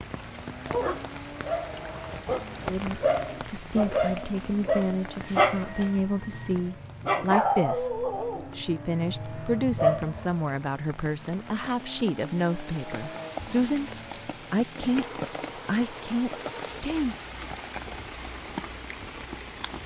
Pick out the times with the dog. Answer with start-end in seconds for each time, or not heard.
0.7-10.4.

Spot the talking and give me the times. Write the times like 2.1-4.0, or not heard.
2.6-13.9, 14.5-15.1, 15.7-17.1.